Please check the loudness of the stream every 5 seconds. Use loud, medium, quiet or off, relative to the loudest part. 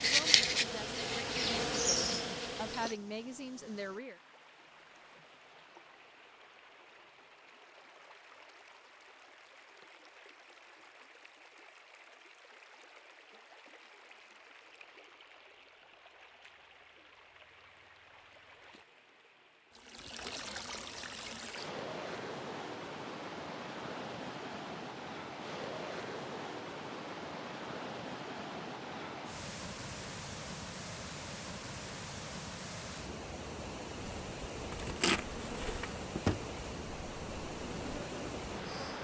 quiet, quiet, quiet, quiet, loud, loud, loud, loud.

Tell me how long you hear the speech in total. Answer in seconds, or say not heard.
4 s.